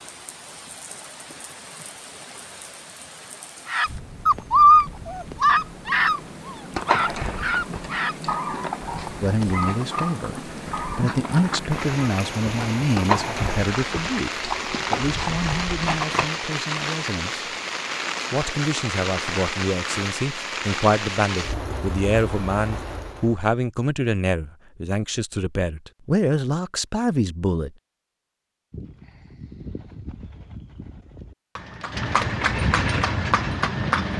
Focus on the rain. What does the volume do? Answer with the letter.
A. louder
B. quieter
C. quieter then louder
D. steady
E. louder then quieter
A.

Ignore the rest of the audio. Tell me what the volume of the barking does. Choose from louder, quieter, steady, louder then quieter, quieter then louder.
quieter.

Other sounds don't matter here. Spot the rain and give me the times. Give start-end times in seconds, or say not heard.
0.0-23.4.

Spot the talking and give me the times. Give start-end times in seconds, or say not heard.
9.2-17.4, 18.3-27.7.